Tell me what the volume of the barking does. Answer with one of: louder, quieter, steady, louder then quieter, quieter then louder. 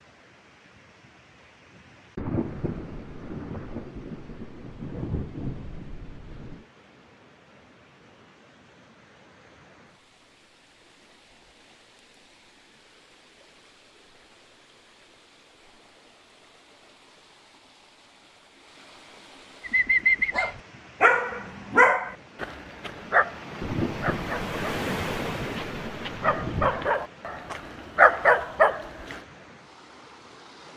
quieter then louder.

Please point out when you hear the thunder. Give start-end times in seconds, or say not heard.
2.1-6.7, 23.6-26.9.